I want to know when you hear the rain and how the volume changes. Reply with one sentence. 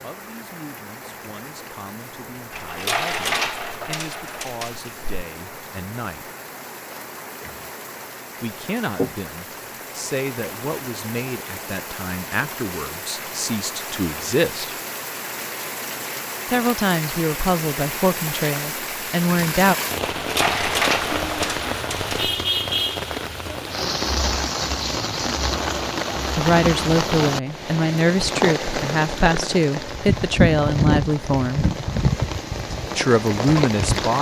The rain can be heard from 0.0 to 34.1 s, getting louder.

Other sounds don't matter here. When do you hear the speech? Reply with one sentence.
The speech can be heard from 0.0 to 6.3 s, from 8.4 to 14.8 s, from 16.4 to 19.8 s, from 26.4 to 31.7 s and from 33.0 to 34.1 s.